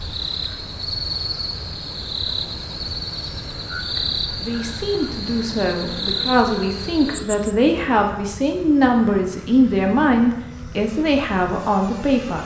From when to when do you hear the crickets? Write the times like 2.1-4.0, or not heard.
0.0-7.5.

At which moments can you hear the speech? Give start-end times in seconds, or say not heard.
4.0-12.4.